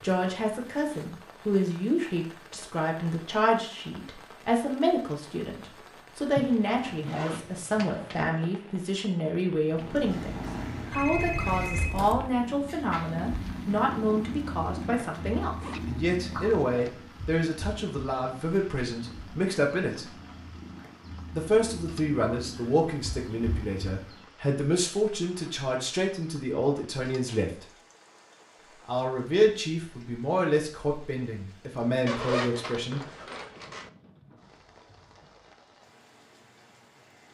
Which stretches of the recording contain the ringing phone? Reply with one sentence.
You can hear the ringing phone from 10.9 to 12.2 s.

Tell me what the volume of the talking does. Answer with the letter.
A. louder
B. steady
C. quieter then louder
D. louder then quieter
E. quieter
B.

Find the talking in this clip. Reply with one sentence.
The talking can be heard from 0.0 to 20.1 s, from 21.3 to 27.6 s and from 28.9 to 33.0 s.